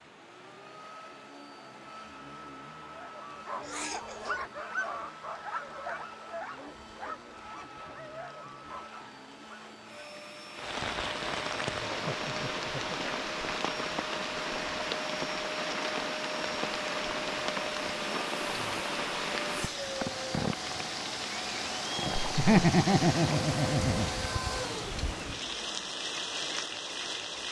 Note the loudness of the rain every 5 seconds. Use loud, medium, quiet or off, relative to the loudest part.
quiet, quiet, loud, loud, loud, loud.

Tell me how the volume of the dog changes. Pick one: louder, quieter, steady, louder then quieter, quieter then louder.
quieter.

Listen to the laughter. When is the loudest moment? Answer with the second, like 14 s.
23 s.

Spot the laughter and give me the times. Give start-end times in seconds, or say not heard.
3.6-4.5, 11.9-13.0, 22.2-24.1.